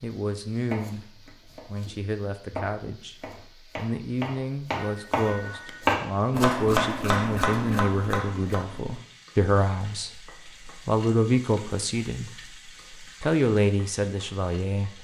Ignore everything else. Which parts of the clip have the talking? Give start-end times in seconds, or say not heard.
0.0-15.0.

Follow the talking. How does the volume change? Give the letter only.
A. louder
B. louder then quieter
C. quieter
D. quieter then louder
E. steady
A.